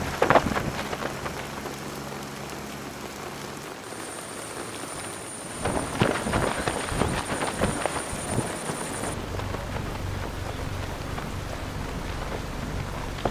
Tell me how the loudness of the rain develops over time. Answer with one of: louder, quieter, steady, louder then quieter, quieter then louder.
steady.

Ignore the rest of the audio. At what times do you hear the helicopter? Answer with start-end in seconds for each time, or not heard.
0.0-13.2.